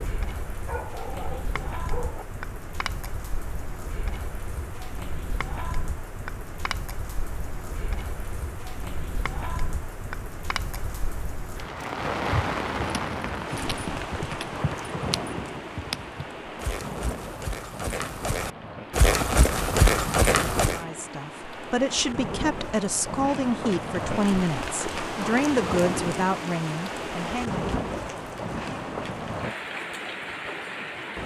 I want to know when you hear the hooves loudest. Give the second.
20 s.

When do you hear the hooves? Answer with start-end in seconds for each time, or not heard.
12.8-20.8.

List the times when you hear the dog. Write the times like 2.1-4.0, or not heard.
0.7-2.2.